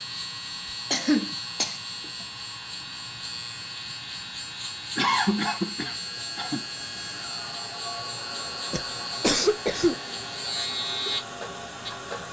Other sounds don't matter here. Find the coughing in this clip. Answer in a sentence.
The coughing can be heard from 0.9 to 2.2 s, from 5.0 to 6.6 s and from 8.7 to 9.9 s.